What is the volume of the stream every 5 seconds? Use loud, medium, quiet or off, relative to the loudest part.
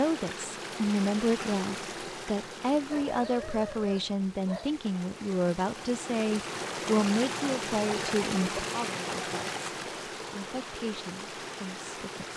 medium, loud, medium.